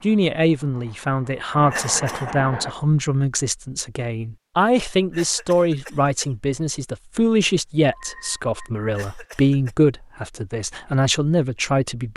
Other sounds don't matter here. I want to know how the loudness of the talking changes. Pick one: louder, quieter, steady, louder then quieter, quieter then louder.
steady.